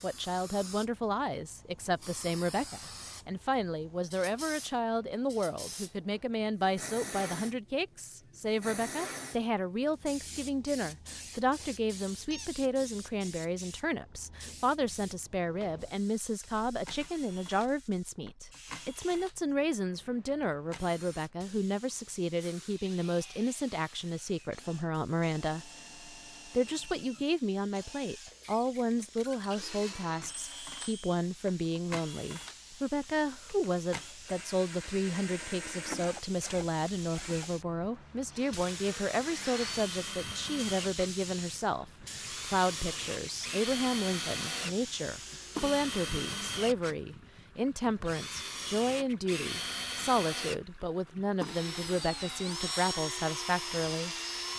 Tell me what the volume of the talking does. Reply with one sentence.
The volume of the talking stays about the same.